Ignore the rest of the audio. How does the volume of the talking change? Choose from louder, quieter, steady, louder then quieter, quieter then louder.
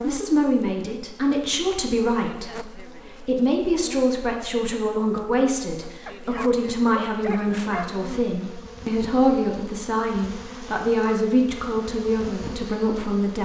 steady.